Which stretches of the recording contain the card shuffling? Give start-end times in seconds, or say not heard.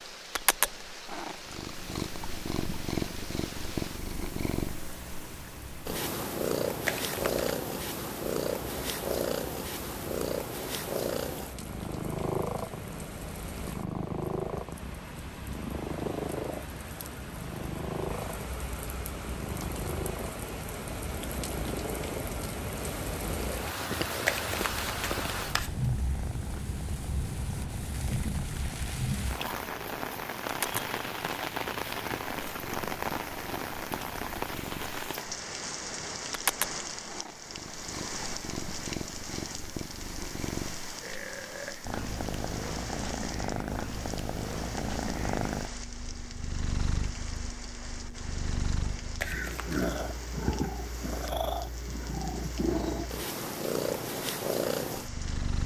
6.8-7.5, 24.2-25.9, 49.2-49.9.